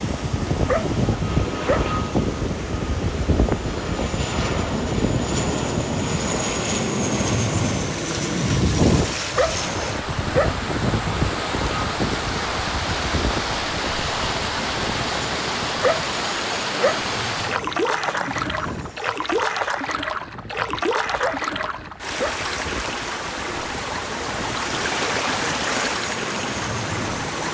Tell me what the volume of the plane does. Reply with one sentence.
The volume of the plane goes down.